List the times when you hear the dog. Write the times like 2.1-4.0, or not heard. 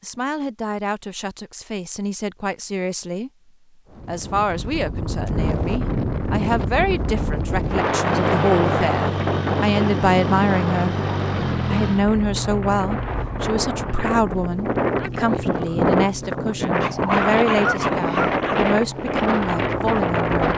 16.8-18.6.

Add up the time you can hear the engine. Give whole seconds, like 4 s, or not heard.
13 s.